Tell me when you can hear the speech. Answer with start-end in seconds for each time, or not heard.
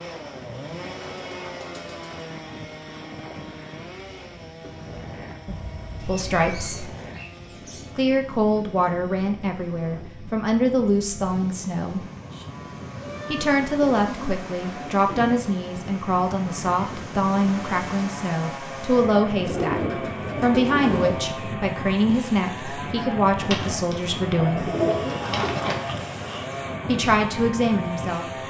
6.0-6.9, 8.0-12.1, 13.2-24.7, 26.9-28.2.